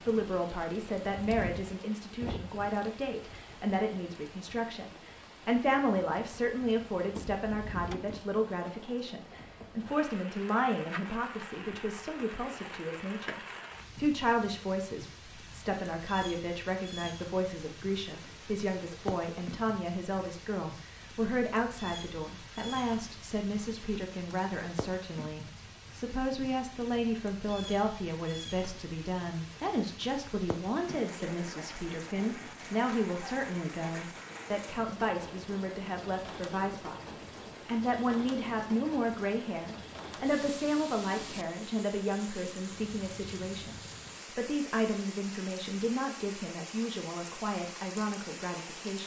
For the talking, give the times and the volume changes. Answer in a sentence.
The talking can be heard from 0.0 to 49.0 s, at a steady volume.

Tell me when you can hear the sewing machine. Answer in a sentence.
The sewing machine can't be heard in this clip.